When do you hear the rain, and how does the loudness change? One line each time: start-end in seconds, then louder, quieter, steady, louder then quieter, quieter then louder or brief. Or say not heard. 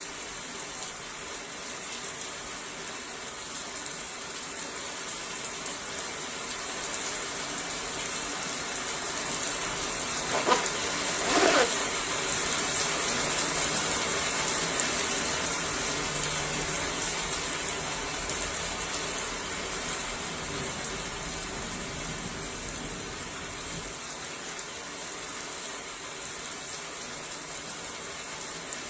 0.0-28.8 louder then quieter.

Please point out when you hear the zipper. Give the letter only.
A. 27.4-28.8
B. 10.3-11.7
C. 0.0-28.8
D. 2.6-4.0
B.